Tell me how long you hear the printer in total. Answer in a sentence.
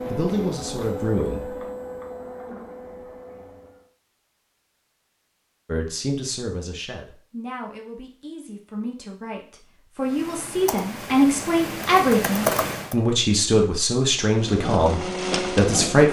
The printer can be heard for 6 seconds in total.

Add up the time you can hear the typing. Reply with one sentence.
The typing can be heard for 3 seconds in total.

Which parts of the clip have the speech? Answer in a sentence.
The speech can be heard from 0.1 to 1.5 s and from 5.7 to 16.0 s.